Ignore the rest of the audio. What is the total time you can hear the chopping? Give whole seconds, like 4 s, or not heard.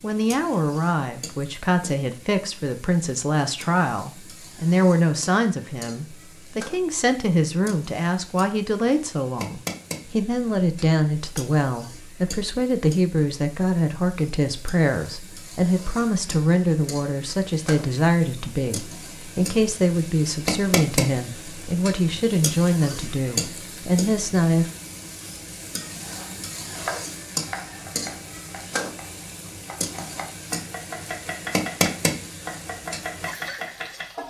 8 s.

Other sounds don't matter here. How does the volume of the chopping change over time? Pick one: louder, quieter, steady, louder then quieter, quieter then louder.
quieter then louder.